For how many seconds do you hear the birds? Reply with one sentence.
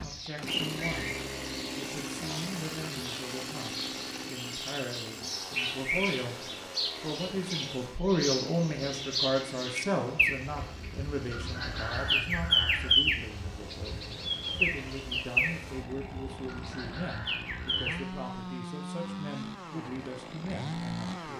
The birds can be heard for 18 seconds in total.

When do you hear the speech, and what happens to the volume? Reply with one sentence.
You can hear the speech from 0.0 to 21.3 s, getting louder then quieter.